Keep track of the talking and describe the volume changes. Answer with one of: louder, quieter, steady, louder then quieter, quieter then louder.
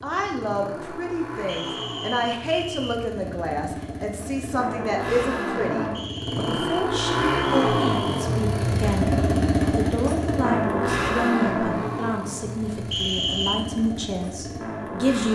steady.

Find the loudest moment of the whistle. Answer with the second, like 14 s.
13 s.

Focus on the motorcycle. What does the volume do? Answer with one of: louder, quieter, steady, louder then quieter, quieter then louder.
louder then quieter.